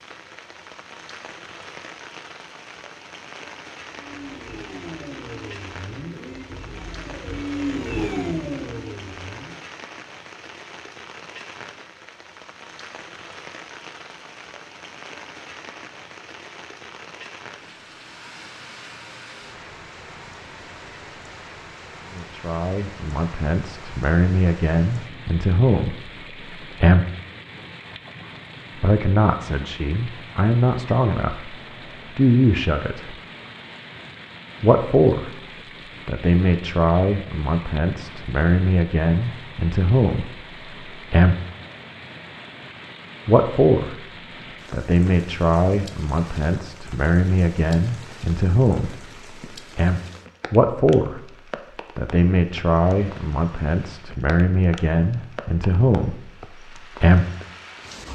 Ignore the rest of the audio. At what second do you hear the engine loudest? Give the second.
8 s.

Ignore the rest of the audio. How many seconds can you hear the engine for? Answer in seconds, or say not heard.
6 s.